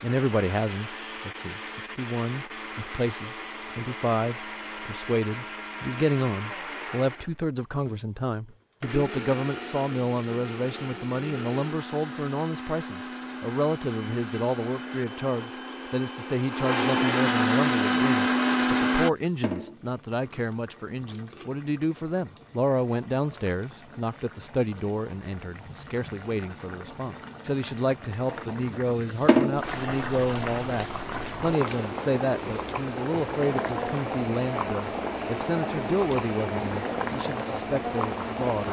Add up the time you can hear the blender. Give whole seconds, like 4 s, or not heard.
24 s.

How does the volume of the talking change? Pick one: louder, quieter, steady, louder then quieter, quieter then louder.
steady.